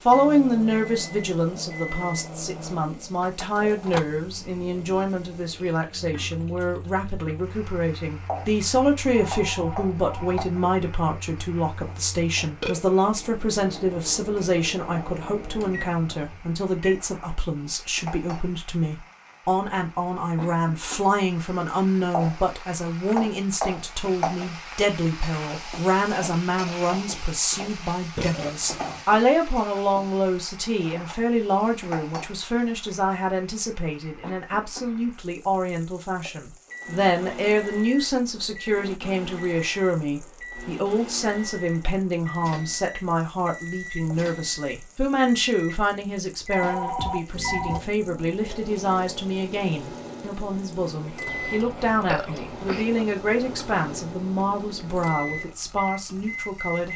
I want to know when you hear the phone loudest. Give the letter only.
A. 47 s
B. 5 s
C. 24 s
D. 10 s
A.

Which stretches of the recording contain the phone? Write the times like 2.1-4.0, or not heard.
9.2-10.4, 46.5-47.8.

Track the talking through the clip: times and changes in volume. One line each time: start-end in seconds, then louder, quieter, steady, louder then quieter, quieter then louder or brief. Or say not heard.
0.0-56.9 steady.